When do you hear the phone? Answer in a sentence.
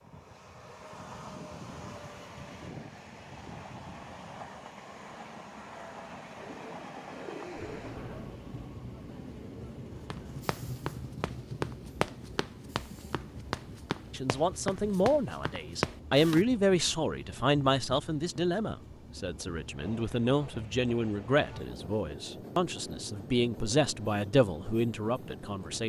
You can't hear the phone here.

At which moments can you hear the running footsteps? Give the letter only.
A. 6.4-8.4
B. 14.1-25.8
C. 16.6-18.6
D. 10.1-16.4
D.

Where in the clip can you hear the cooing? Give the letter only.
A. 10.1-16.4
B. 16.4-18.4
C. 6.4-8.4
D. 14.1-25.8
C.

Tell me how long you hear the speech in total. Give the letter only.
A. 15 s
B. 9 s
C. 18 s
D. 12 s
D.